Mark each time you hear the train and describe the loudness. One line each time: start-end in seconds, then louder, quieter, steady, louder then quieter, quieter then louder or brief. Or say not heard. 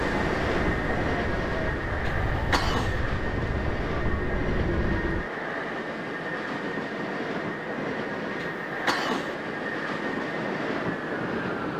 0.0-11.7 steady.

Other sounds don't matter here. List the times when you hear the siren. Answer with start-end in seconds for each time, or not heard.
0.0-5.3.